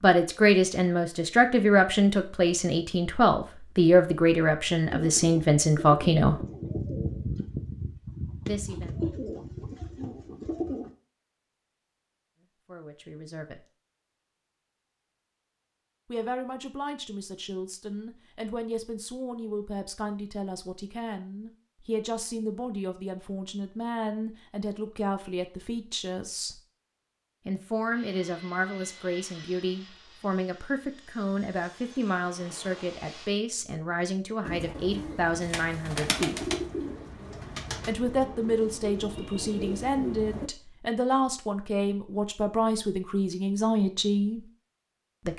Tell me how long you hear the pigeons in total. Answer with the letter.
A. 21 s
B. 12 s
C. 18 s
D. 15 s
B.